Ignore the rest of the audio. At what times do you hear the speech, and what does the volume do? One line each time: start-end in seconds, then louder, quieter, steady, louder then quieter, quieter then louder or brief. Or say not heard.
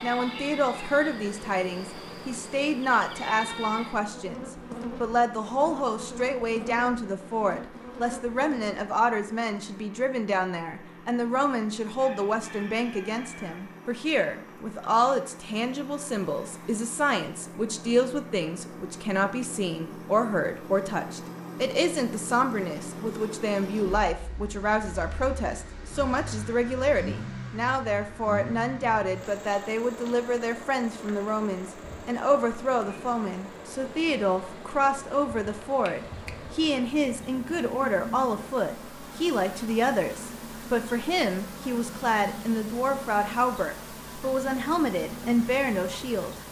0.0-46.4 steady.